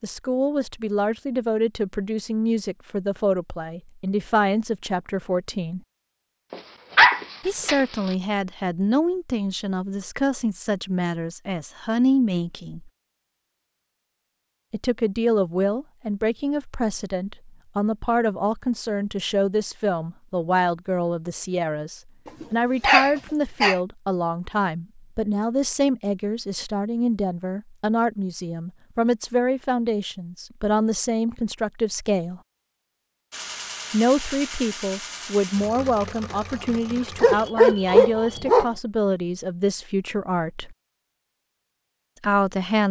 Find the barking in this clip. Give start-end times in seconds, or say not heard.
6.5-8.2, 22.4-23.8, 37.2-38.6.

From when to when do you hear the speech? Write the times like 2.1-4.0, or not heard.
0.0-5.8, 7.5-12.9, 14.7-32.4, 33.9-40.8, 42.2-42.8.